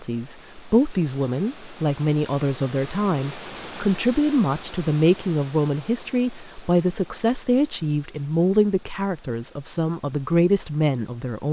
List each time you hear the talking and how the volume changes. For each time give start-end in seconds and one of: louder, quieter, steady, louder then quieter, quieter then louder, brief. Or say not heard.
0.0-11.4 steady.